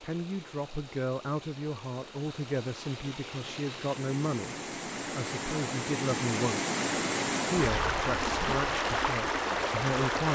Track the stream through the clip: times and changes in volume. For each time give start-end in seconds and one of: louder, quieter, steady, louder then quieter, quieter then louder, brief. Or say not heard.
0.0-10.3 louder.